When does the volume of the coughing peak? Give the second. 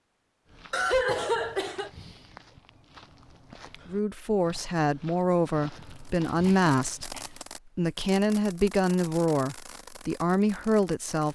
1 s.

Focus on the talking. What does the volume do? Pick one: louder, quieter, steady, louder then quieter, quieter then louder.
steady.